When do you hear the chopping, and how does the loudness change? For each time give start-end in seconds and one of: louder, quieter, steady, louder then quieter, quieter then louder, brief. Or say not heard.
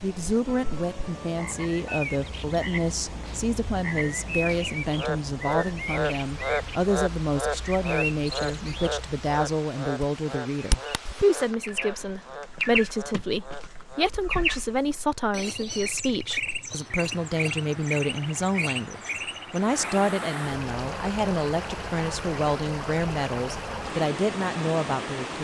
not heard.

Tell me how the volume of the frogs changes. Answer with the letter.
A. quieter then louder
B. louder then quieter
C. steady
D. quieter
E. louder
B.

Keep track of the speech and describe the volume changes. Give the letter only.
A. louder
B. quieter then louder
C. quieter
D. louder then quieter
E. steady
E.